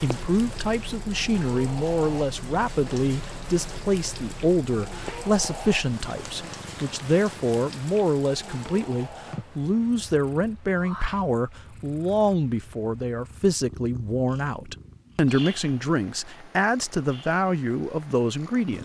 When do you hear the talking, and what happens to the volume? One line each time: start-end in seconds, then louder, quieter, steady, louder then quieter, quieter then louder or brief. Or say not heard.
0.0-18.7 steady.